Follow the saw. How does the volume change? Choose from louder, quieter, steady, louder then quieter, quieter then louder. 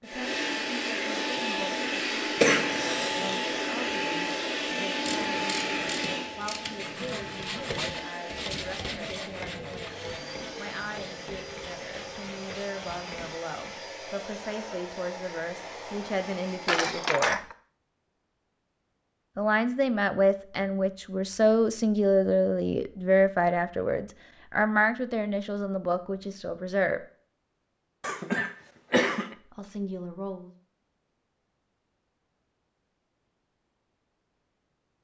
quieter.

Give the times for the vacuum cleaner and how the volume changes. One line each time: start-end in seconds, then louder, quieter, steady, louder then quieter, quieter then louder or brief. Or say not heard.
0.0-17.1 quieter.